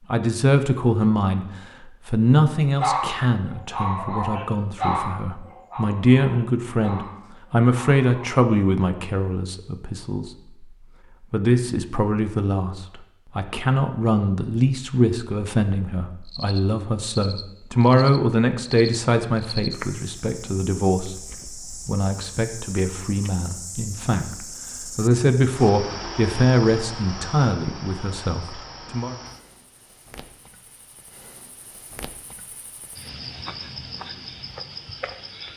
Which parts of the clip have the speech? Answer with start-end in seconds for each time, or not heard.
0.1-10.7, 11.3-29.1.